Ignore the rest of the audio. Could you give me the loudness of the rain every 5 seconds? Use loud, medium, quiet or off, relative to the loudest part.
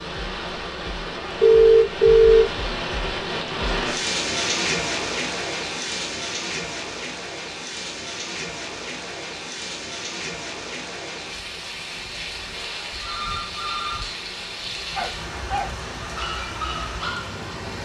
loud, loud, medium, medium.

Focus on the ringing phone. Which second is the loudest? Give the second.
2 s.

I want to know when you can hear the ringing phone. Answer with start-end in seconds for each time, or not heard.
1.4-2.5, 12.5-14.1.